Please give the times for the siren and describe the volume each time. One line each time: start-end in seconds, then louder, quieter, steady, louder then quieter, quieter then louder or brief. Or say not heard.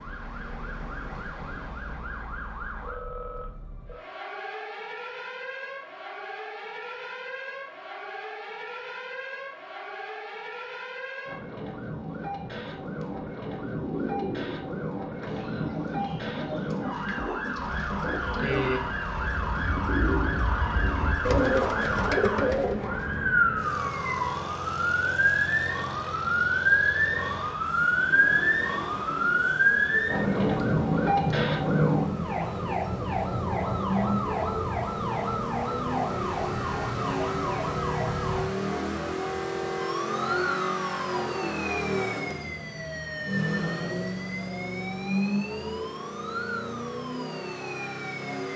0.0-48.5 louder then quieter.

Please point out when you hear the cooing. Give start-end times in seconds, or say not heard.
12.8-23.2.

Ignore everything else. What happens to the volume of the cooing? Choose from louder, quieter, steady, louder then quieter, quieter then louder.
louder.